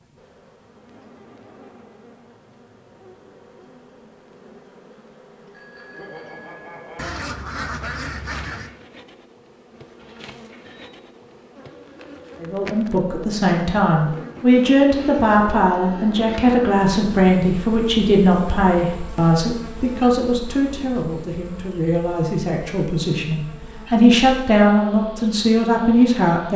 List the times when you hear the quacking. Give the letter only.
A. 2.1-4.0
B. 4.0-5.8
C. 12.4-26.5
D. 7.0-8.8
D.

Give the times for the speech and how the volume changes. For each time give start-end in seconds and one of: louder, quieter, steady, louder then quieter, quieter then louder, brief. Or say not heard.
12.4-26.5 quieter then louder.